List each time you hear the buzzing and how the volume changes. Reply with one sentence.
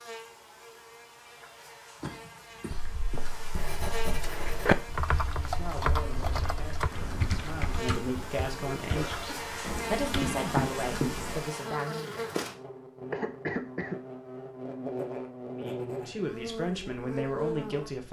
You can hear the buzzing from 0.0 to 18.0 s, getting louder.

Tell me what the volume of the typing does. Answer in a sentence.
The loudness of the typing goes down.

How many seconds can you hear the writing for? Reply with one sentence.
You can hear the writing for 4 seconds altogether.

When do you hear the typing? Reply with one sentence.
You can hear the typing from 4.2 to 10.3 s.